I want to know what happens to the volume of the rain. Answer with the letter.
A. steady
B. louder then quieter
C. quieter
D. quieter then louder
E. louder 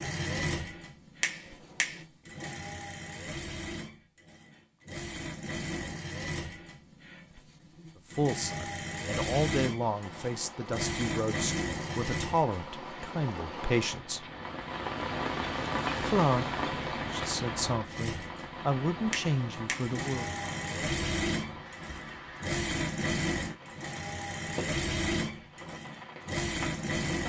B.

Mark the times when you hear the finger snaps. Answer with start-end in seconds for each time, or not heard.
1.2-2.0, 19.1-19.9.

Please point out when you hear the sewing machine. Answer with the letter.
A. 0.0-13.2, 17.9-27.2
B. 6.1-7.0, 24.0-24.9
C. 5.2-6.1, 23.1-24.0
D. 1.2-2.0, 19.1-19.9
A.